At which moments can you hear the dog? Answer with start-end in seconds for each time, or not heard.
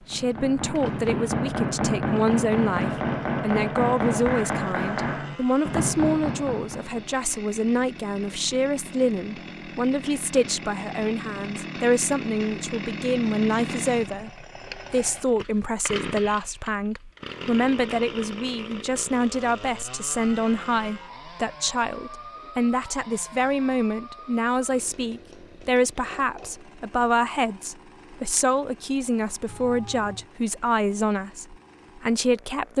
not heard.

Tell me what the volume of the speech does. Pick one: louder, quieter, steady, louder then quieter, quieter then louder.
steady.